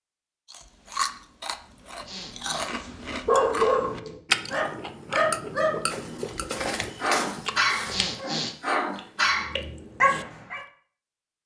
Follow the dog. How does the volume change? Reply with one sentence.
The loudness of the dog goes down, then up.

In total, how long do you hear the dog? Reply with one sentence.
You can hear the dog for 8 seconds altogether.